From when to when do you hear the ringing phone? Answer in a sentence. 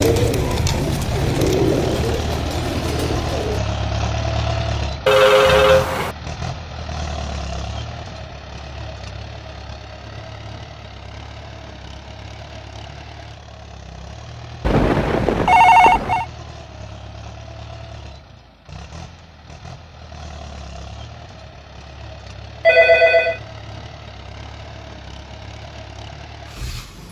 The ringing phone can be heard from 5.0 to 6.2 s, from 14.7 to 16.2 s and from 22.6 to 23.4 s.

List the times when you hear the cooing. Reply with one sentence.
The cooing can be heard from 0.0 to 3.6 s.